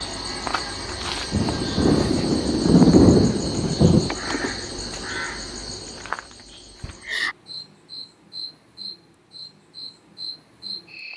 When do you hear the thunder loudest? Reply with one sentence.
The volume of the thunder peaks at 3 seconds.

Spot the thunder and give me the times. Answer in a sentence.
You can hear the thunder from 1.3 to 4.1 s.